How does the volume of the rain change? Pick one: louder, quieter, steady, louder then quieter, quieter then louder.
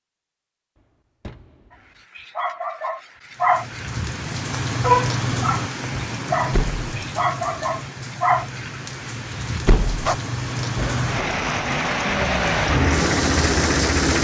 quieter then louder.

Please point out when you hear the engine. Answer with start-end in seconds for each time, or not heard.
10.8-14.1.